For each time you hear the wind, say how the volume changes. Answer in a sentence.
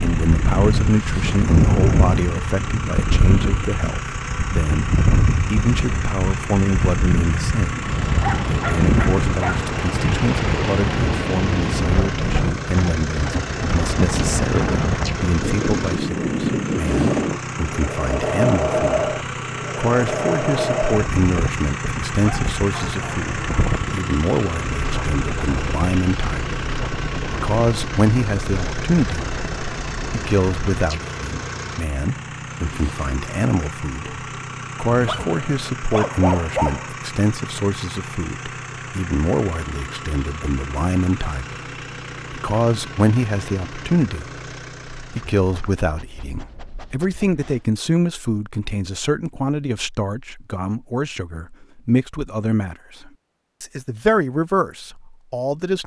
You can hear the wind from 0.0 to 30.8 s, getting quieter.